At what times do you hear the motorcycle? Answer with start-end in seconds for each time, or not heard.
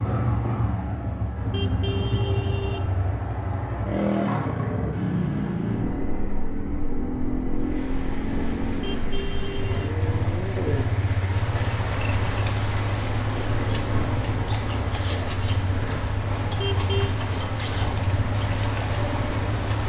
0.0-19.8.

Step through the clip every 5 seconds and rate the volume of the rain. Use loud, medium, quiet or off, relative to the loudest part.
off, medium, loud, loud.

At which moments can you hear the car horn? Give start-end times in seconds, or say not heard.
1.4-3.0, 8.9-9.9, 16.4-17.1.